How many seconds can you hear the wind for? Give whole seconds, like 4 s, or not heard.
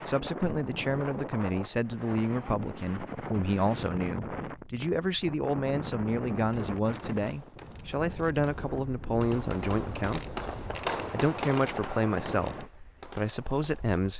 14 s.